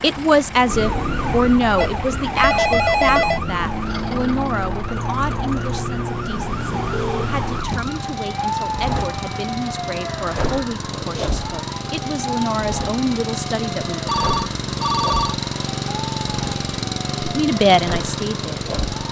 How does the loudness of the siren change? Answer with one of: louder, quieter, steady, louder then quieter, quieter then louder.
quieter.